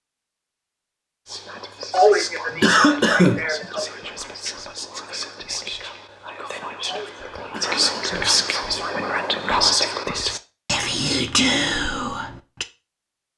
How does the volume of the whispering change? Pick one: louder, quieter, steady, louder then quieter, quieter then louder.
louder.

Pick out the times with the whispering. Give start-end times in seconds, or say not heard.
1.2-12.7.